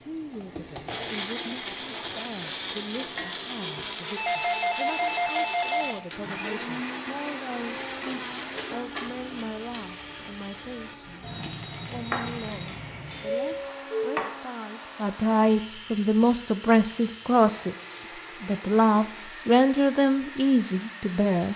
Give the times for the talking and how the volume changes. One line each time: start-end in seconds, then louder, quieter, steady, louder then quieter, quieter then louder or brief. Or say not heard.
0.0-21.5 louder.